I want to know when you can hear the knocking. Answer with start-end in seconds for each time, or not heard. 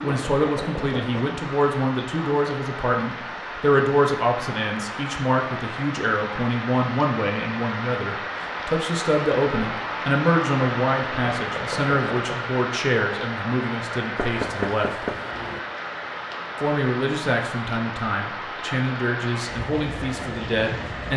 0.1-1.2, 11.2-12.3, 14.2-15.6.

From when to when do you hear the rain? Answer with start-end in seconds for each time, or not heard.
0.0-21.1.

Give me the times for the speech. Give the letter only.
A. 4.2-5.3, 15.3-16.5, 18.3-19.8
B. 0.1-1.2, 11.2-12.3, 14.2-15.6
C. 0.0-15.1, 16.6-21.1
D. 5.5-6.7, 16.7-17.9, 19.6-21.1
C.